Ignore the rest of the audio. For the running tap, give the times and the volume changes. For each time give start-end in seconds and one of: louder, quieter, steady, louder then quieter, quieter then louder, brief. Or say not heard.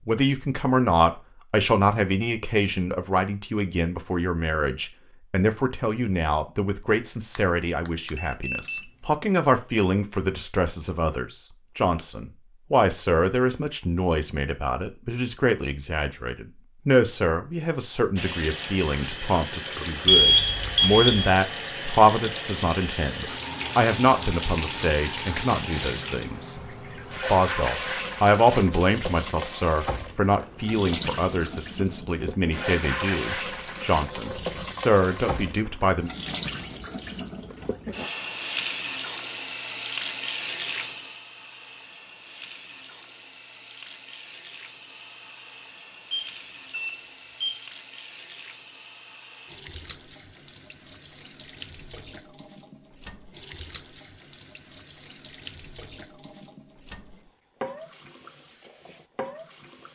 18.1-59.9 quieter.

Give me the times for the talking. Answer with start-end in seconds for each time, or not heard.
0.1-26.6, 27.2-36.1.